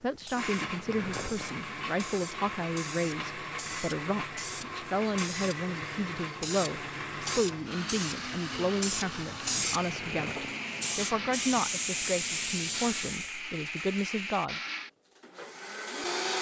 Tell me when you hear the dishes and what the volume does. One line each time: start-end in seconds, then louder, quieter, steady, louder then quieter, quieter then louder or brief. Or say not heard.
not heard.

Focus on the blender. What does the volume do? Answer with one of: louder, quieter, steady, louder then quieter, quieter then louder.
steady.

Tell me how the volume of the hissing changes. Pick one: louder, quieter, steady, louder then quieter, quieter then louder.
louder.